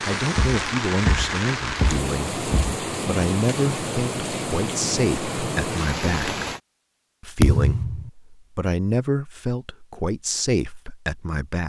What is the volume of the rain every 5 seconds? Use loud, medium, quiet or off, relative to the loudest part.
loud, loud, off.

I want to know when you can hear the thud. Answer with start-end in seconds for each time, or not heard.
0.3-2.8, 7.4-8.1.